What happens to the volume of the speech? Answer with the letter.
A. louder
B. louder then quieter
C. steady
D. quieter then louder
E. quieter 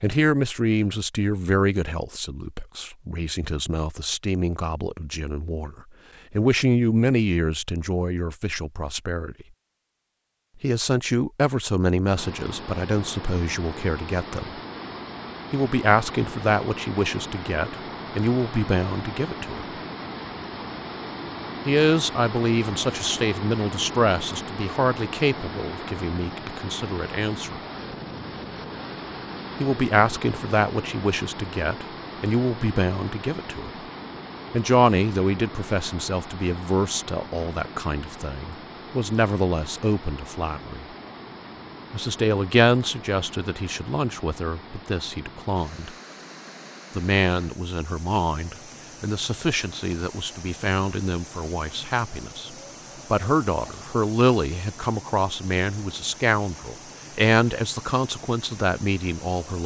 C.